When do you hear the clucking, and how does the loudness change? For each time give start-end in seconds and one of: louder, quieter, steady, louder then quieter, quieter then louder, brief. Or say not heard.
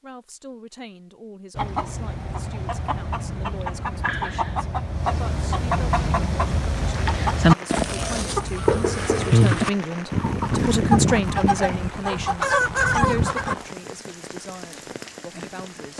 1.6-13.6 louder.